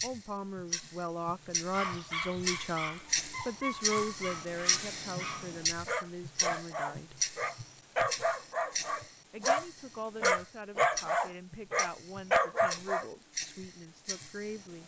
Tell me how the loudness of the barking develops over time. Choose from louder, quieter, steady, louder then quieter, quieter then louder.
louder.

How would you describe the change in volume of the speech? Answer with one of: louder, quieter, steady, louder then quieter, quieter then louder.
quieter.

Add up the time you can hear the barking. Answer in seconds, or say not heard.
11 s.